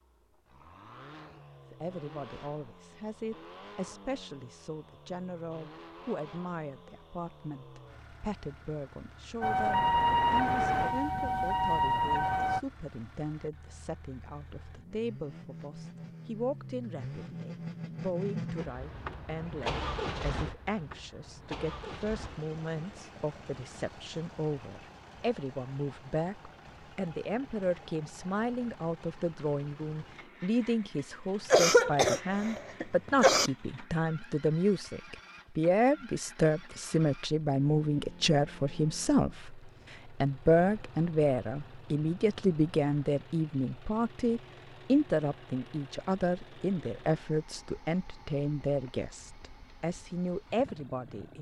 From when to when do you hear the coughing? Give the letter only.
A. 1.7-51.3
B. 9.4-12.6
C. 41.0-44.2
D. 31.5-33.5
D.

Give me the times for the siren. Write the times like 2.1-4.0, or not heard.
9.4-12.6.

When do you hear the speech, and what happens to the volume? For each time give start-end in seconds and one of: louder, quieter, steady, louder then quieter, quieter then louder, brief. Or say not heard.
1.7-51.3 louder.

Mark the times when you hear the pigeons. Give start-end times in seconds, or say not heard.
not heard.